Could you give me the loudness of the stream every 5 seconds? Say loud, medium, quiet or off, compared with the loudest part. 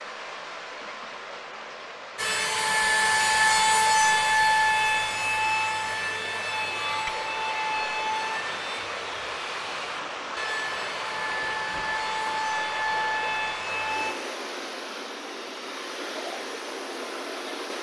medium, loud, loud, loud.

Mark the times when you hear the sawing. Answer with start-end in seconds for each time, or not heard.
2.1-14.2.